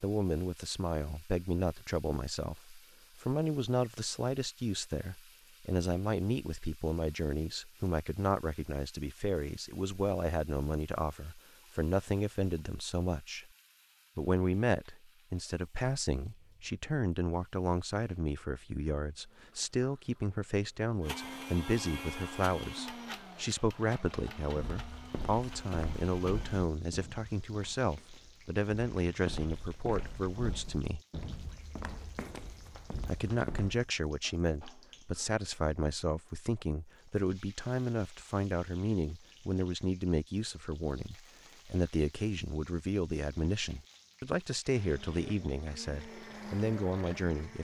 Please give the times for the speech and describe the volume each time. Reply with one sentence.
The speech can be heard from 0.0 to 13.4 s, at a steady volume; from 14.2 to 31.0 s, at a steady volume; and from 33.0 to 47.5 s, at a steady volume.